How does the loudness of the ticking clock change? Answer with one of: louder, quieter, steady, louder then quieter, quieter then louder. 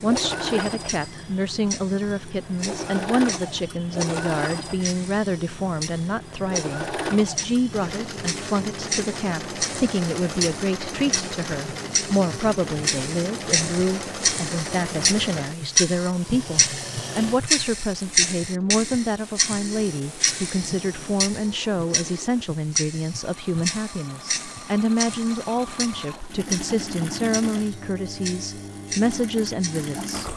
louder then quieter.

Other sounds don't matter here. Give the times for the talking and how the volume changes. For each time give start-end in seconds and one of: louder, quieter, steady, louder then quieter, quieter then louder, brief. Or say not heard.
0.0-30.3 steady.